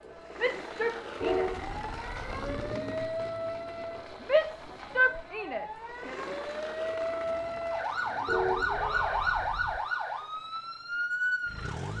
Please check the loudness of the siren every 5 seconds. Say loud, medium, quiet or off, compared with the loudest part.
medium, loud, loud.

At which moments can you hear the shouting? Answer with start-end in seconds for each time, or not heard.
0.3-1.6, 4.2-6.2, 8.7-9.5.